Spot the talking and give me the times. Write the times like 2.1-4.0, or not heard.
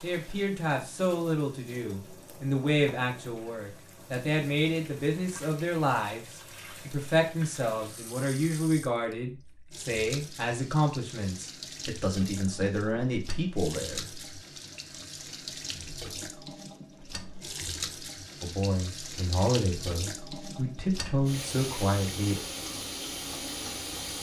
0.0-14.1, 18.4-22.4.